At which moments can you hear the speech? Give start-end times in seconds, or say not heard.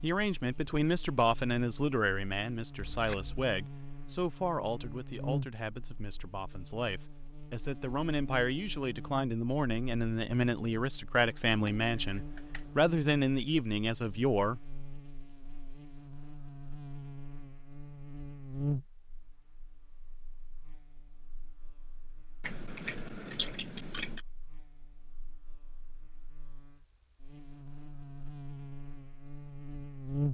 0.0-14.8.